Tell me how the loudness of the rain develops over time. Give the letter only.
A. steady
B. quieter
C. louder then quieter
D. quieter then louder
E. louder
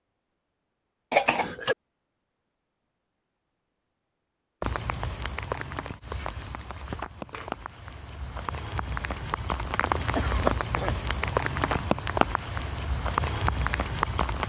E.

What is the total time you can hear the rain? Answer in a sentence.
You can hear the rain for 10 seconds altogether.